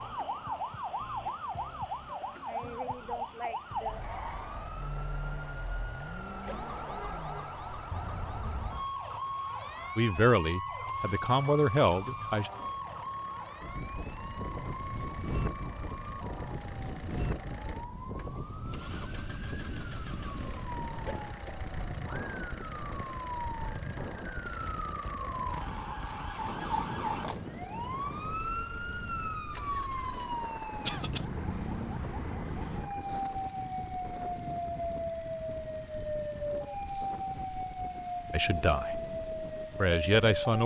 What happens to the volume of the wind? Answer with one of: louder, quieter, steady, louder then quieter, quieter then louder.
quieter.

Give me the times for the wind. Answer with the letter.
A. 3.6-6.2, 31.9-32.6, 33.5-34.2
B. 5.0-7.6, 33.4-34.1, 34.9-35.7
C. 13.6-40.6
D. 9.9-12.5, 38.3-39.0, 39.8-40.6
C.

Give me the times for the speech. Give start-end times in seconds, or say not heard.
9.9-12.5, 38.3-39.0, 39.8-40.6.